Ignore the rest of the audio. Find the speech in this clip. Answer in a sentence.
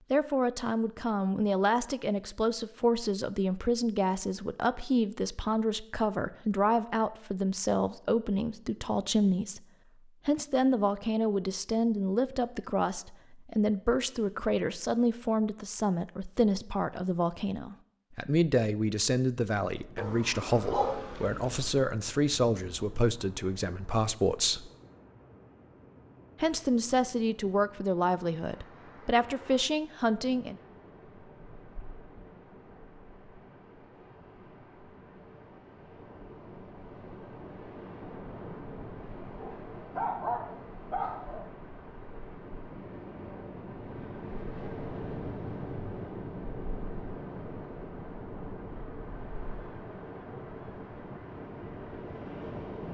The speech can be heard from 0.1 to 24.7 s and from 26.4 to 30.6 s.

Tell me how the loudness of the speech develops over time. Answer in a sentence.
The loudness of the speech stays about the same.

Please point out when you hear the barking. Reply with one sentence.
The barking can be heard from 19.9 to 21.9 s and from 39.0 to 41.5 s.